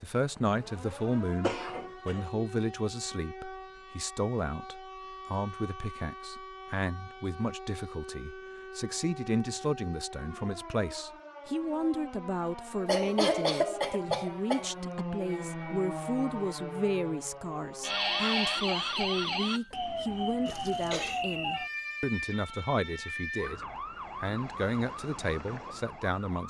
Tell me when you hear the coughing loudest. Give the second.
13 s.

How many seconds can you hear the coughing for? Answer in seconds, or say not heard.
4 s.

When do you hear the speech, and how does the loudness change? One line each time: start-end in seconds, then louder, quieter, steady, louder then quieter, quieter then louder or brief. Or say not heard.
0.0-23.6 steady
24.2-26.4 brief.